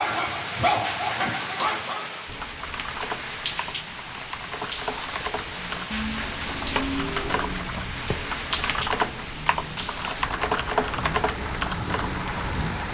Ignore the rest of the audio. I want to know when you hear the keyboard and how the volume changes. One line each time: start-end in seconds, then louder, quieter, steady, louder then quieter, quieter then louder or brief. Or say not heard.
2.2-12.7 louder.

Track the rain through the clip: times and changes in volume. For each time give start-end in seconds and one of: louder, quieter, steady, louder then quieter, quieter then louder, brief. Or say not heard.
0.0-12.8 steady.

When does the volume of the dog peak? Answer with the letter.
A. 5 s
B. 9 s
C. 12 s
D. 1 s
D.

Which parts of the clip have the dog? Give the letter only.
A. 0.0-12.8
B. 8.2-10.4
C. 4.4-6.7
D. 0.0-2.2
D.